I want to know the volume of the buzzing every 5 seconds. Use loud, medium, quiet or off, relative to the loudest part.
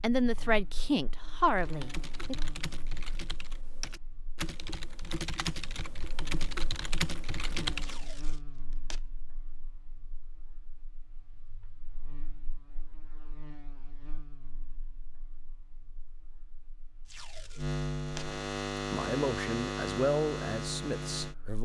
quiet, quiet, quiet, loud, loud.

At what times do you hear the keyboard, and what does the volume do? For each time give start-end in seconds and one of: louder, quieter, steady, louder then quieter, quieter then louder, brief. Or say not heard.
1.4-8.1 louder.